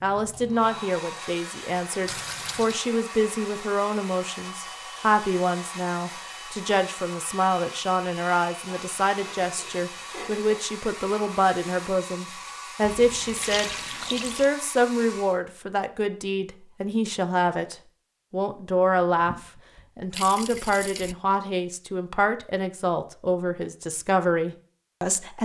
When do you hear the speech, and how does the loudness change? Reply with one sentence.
You can hear the speech from 0.0 to 25.4 s, at a steady volume.